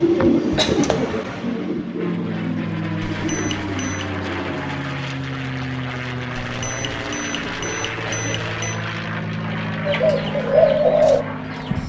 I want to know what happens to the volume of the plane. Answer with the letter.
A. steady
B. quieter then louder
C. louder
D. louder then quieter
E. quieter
A.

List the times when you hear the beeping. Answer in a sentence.
You can hear the beeping from 3.0 to 4.0 s and from 6.4 to 8.8 s.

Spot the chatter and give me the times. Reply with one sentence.
The chatter can't be heard in this clip.